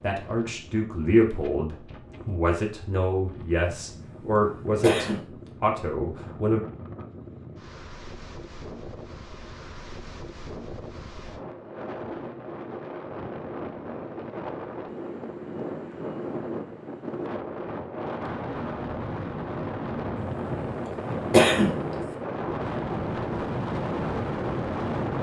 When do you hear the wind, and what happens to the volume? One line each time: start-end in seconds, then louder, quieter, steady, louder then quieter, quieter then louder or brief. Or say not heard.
0.0-25.1 louder.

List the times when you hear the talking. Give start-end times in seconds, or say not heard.
0.0-6.6.